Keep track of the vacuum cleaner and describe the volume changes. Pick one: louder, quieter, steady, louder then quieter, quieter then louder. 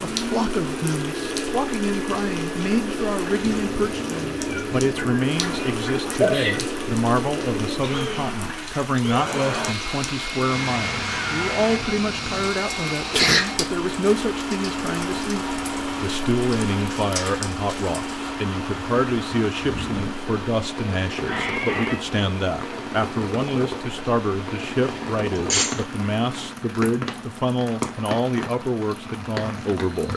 quieter.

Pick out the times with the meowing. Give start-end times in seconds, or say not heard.
3.4-5.1, 10.7-12.5, 21.2-22.1.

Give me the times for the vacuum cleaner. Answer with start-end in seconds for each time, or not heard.
0.0-26.6.